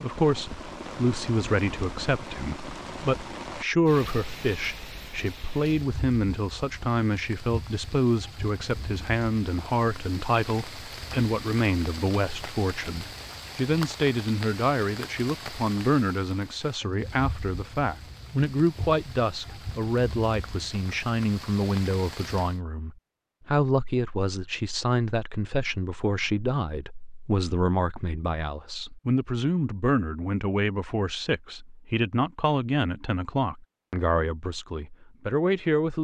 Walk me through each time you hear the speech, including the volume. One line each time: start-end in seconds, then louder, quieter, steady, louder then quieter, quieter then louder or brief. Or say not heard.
0.0-35.9 steady.